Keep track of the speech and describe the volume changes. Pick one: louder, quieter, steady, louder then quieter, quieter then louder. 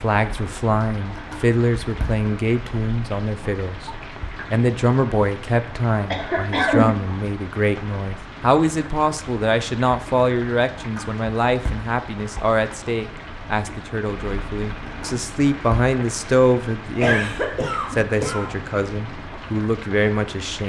steady.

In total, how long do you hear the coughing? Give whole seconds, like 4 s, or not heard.
2 s.